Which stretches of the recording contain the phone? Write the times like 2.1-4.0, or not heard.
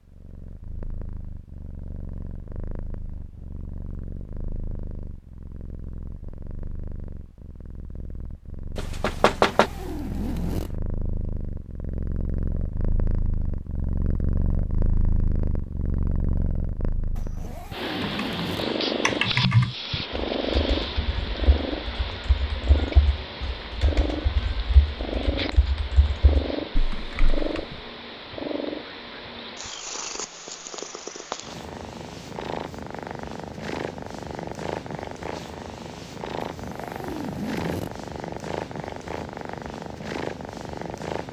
not heard.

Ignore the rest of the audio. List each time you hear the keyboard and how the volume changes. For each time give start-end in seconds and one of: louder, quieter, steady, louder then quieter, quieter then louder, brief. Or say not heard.
17.9-27.6 quieter then louder.